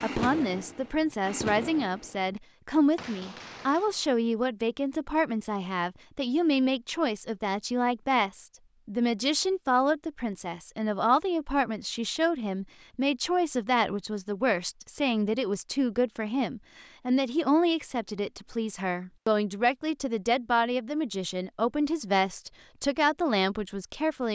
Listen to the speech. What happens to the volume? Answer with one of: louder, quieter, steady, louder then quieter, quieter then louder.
steady.